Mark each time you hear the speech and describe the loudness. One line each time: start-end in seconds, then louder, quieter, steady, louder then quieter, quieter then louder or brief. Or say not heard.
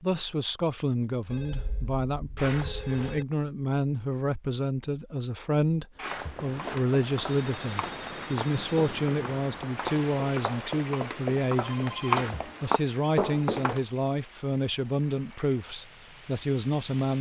0.0-17.1 steady.